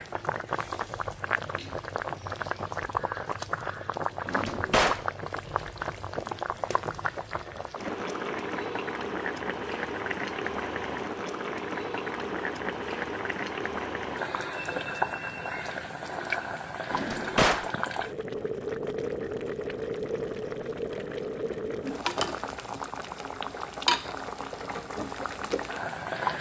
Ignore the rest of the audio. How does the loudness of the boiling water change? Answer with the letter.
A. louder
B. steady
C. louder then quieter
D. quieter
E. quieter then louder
B.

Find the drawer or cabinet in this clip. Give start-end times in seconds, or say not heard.
4.2-5.0, 16.9-17.7.